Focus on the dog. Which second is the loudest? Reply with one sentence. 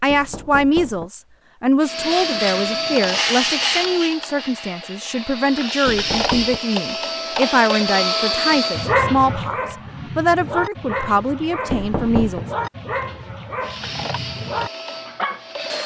The volume of the dog peaks at 9 seconds.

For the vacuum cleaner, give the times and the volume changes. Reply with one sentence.
The vacuum cleaner can be heard from 1.8 to 8.9 s, getting quieter then louder; and briefly from 13.6 to 15.8 s.